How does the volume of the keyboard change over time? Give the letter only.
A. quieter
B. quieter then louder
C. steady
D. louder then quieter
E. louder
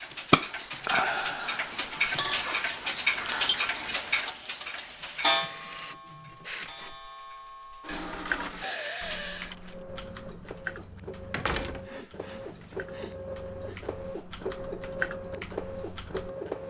B.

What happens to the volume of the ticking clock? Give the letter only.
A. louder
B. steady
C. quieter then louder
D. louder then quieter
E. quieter
E.